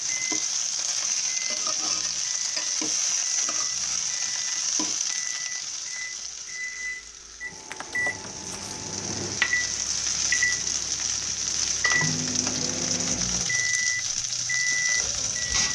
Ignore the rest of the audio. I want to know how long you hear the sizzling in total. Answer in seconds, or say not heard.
16 s.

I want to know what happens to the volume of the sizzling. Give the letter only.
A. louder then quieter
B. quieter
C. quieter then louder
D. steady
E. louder
C.